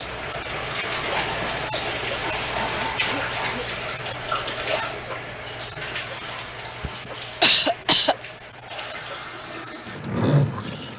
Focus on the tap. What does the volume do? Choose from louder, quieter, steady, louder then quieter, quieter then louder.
quieter then louder.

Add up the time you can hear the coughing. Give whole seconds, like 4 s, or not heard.
3 s.